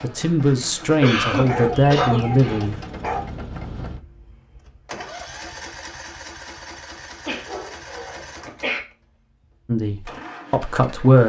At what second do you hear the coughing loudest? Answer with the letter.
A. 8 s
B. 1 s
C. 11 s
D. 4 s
B.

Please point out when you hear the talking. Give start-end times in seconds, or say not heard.
0.0-2.8, 9.7-11.2.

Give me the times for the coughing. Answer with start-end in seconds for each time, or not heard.
1.0-2.2, 7.2-8.8.